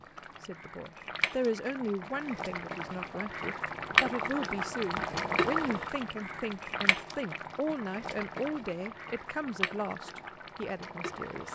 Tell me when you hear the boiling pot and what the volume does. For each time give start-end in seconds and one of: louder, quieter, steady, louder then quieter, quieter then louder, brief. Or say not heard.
0.0-11.5 louder then quieter.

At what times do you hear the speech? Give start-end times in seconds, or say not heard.
0.4-11.5.